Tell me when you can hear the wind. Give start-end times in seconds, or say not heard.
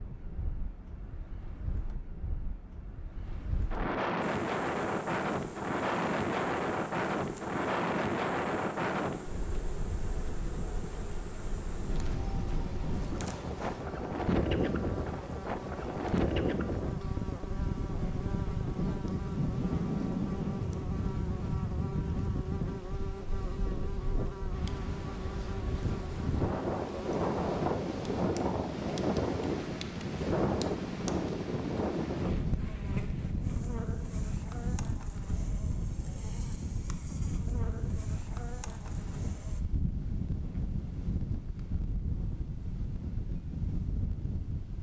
0.0-44.7.